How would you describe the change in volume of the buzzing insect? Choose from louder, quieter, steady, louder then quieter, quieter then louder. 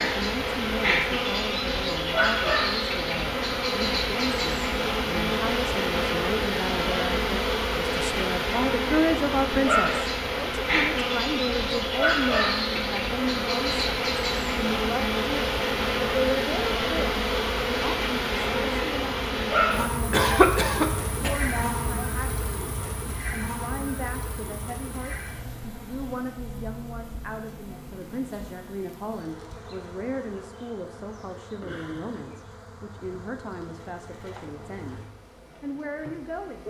quieter.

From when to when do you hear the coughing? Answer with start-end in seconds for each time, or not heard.
20.1-21.4.